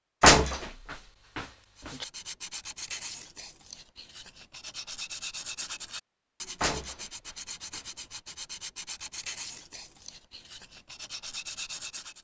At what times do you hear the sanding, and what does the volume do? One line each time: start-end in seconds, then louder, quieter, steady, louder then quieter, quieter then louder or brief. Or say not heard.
1.8-12.1 steady.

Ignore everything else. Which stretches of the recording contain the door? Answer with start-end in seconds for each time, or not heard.
0.2-2.0, 6.6-7.8.